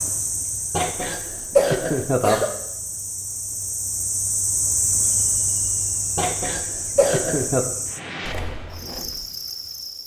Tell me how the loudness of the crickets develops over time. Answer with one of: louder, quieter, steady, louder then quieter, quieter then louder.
louder then quieter.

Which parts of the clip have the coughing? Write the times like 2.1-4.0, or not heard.
0.7-2.5, 6.2-7.7.